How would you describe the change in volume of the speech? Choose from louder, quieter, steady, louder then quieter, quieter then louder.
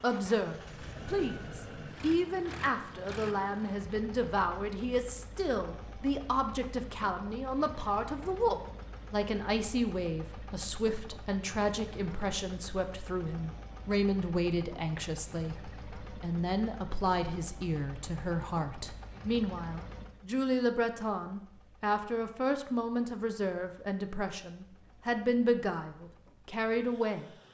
steady.